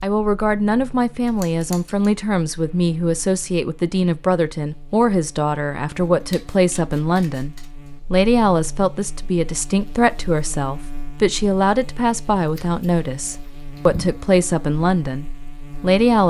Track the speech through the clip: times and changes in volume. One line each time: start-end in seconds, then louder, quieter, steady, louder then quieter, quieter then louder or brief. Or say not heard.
0.0-16.2 steady.